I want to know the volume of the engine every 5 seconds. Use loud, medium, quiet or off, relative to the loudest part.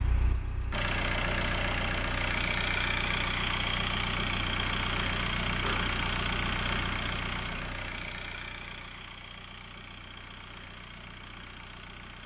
loud, loud, quiet.